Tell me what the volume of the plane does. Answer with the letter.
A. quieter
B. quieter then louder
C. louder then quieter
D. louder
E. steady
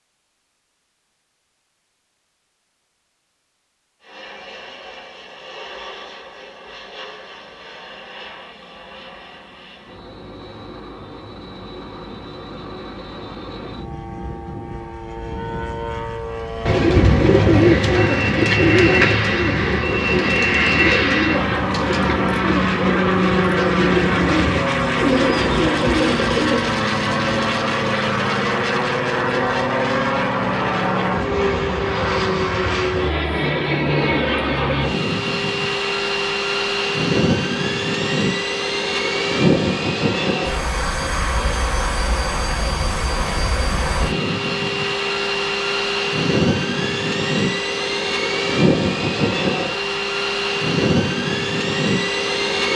D.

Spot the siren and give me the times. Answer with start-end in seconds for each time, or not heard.
not heard.